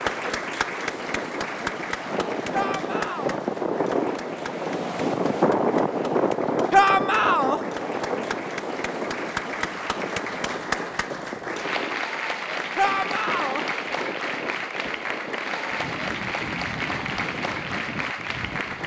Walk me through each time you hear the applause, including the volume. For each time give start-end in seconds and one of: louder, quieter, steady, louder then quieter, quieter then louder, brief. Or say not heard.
0.0-18.8 quieter then louder.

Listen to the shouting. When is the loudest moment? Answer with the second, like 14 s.
7 s.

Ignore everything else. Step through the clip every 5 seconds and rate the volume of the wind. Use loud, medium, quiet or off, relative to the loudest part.
loud, loud, medium, medium.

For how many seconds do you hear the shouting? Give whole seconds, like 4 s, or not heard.
3 s.